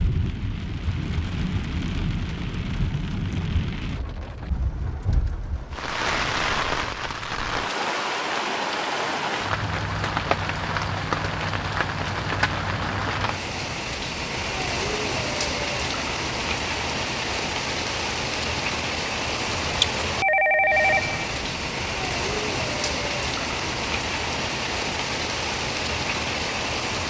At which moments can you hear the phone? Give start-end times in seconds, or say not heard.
20.2-21.5.